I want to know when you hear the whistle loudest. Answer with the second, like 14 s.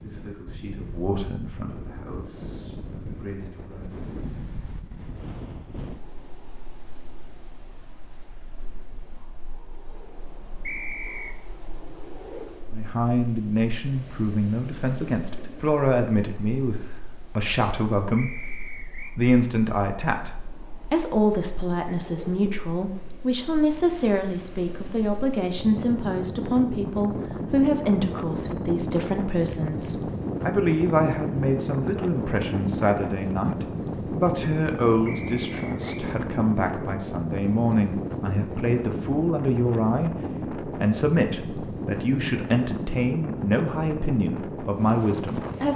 11 s.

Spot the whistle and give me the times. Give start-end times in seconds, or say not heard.
10.7-11.3, 18.1-19.1, 35.0-36.0.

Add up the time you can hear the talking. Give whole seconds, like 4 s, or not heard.
37 s.